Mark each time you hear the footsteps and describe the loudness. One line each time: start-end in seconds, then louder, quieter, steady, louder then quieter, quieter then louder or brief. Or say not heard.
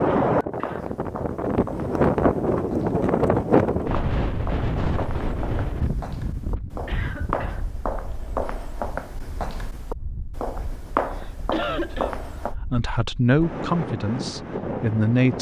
0.6-12.6 louder.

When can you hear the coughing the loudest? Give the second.
12 s.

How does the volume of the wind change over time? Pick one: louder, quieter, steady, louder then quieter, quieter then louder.
quieter then louder.